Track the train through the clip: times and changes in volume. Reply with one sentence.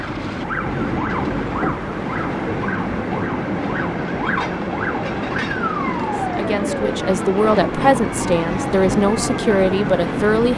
The train can be heard from 0.0 to 10.5 s, at a steady volume.